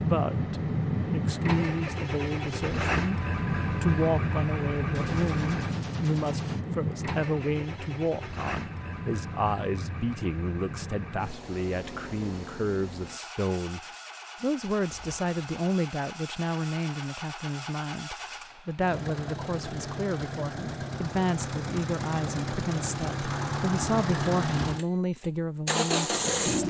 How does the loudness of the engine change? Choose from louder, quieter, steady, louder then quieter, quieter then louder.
quieter then louder.